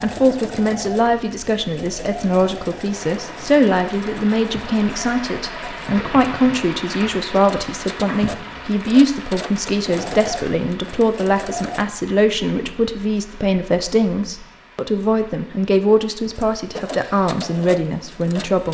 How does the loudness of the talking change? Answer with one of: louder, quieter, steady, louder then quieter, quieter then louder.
steady.